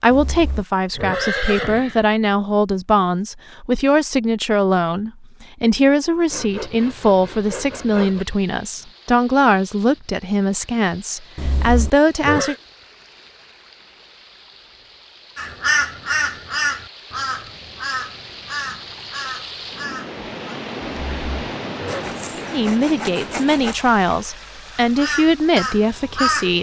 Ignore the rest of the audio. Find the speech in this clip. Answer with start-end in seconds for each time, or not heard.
0.0-12.6, 22.5-26.5.